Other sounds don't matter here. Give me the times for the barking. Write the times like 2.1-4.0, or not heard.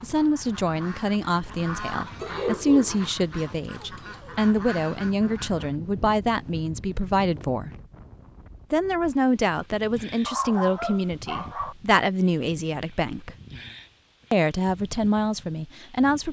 2.2-4.3, 10.2-11.8.